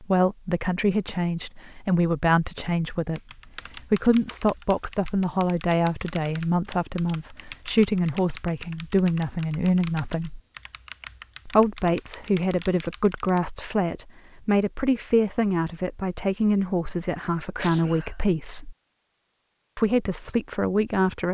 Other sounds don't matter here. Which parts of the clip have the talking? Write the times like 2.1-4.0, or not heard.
0.0-10.4, 11.4-18.8, 19.8-21.2.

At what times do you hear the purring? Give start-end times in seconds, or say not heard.
not heard.